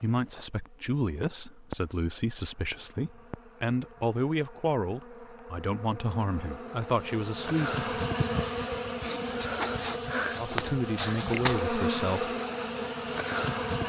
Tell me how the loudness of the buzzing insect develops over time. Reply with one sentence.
The volume of the buzzing insect goes up.